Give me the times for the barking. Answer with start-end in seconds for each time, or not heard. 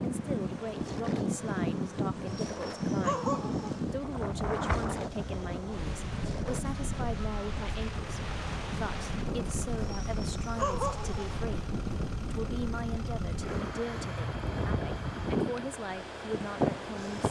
2.2-3.8, 9.8-11.3.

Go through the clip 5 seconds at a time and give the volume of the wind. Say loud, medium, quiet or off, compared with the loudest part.
loud, medium, medium, loud.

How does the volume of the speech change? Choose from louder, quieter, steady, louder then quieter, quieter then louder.
steady.